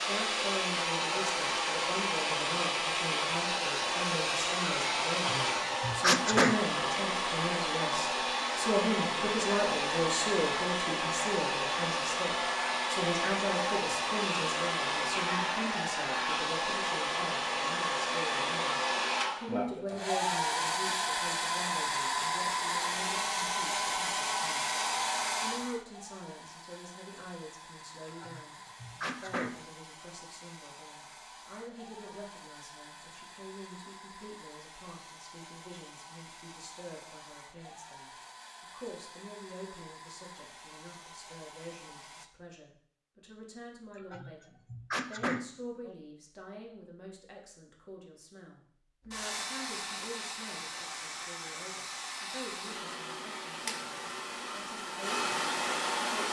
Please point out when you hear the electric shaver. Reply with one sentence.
You can't hear the electric shaver here.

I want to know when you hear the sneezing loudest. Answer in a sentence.
The volume of the sneezing peaks at 6 seconds.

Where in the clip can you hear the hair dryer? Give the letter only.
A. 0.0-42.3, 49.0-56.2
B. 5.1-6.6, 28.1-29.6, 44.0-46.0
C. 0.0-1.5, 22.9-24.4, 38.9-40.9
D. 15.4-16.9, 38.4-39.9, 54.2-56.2
A.